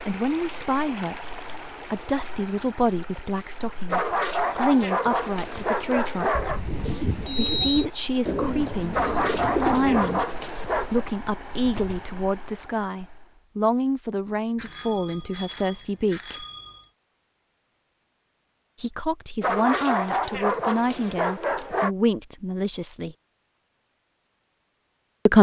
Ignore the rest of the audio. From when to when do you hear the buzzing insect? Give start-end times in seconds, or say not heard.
not heard.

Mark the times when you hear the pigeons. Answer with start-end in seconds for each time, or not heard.
6.7-12.0.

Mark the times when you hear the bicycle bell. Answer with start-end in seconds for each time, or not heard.
6.3-7.8, 14.6-16.8.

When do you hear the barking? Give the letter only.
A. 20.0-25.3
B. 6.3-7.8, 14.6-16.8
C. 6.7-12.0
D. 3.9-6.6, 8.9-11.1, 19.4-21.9
D.